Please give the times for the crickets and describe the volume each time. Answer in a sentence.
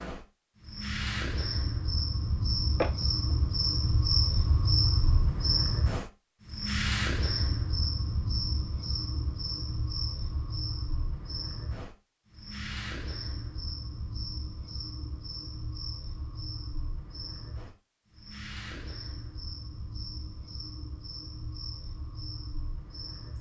You can hear the crickets from 0.0 to 23.3 s, getting quieter.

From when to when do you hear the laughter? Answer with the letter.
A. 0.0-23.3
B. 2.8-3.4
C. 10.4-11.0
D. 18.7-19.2
B.